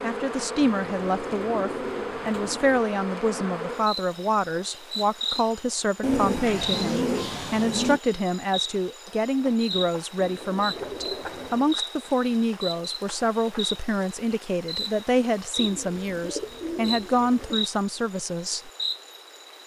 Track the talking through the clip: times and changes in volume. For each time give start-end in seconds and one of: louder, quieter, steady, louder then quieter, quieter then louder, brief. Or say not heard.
0.0-18.7 steady.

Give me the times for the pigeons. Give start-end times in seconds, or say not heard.
0.6-2.9, 6.0-8.0, 10.2-11.8, 15.6-17.6.